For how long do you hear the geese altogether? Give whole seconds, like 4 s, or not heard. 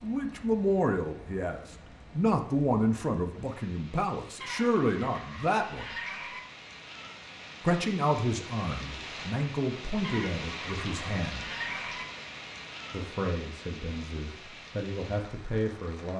4 s.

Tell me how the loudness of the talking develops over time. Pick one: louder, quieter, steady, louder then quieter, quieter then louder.
quieter.